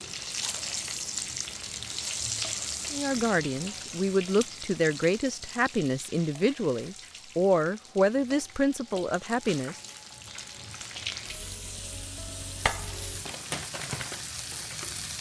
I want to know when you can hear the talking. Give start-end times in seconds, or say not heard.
2.9-9.8.